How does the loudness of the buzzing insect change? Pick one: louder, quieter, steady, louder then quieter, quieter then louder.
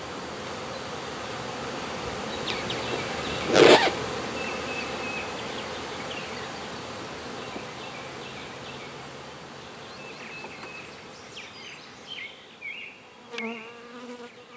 quieter.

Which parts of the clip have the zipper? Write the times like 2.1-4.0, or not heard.
2.8-4.0.